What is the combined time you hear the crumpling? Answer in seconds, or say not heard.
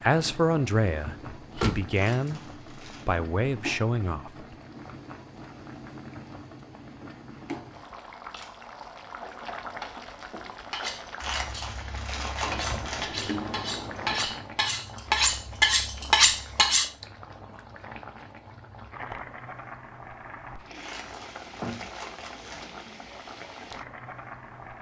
5 s.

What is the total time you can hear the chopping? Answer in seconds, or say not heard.
not heard.